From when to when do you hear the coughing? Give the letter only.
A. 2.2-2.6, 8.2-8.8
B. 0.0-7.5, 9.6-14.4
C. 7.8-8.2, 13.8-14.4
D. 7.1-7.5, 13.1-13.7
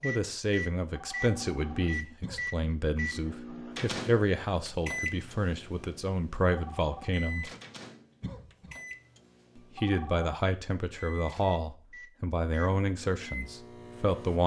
A.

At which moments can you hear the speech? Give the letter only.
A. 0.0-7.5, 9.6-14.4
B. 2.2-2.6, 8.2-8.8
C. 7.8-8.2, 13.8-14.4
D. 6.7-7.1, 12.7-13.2
A.